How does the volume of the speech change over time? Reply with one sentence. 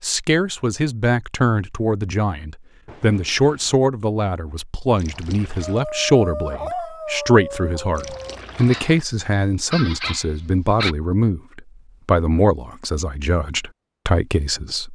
The volume of the speech stays about the same.